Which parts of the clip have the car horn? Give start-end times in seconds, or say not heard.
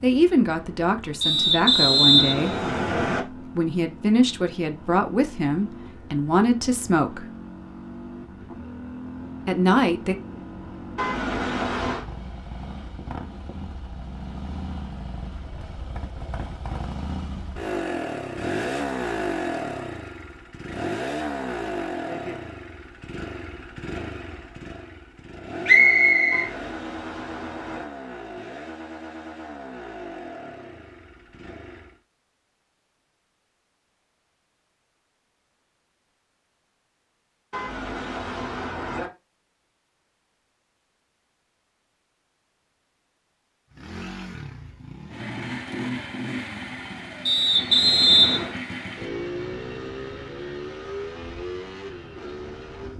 10.9-12.1, 26.3-27.9, 37.5-39.1.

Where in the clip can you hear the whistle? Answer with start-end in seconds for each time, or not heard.
1.2-3.2, 25.6-26.5, 47.2-48.5.